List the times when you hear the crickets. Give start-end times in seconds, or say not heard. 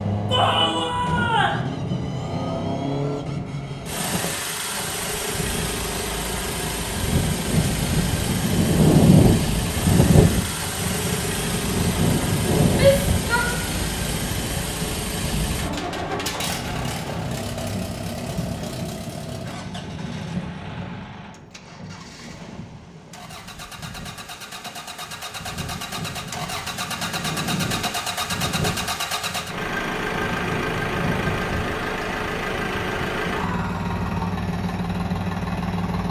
not heard.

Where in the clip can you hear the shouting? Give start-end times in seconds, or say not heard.
0.3-1.6, 12.7-13.8, 33.2-34.4.